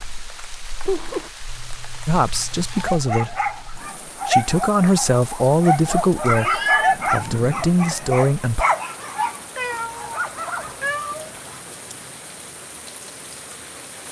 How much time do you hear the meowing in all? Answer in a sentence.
You can hear the meowing for 3 seconds altogether.